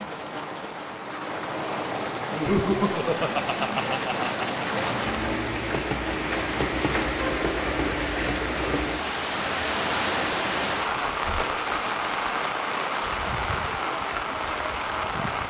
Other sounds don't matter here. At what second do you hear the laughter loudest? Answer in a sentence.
The loudest moment of the laughter is at 3 seconds.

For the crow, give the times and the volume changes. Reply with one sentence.
You can't hear the crow here.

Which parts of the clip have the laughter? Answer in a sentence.
You can hear the laughter from 2.3 to 4.7 s.